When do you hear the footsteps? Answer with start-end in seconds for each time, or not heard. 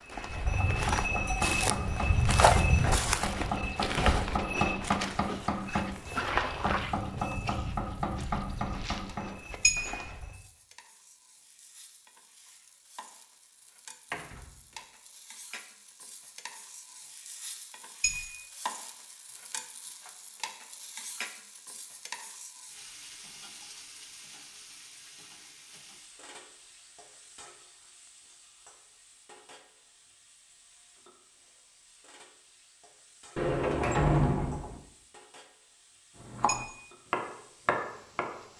0.0-10.4.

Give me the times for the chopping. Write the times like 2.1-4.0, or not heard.
0.4-9.7, 36.1-38.4.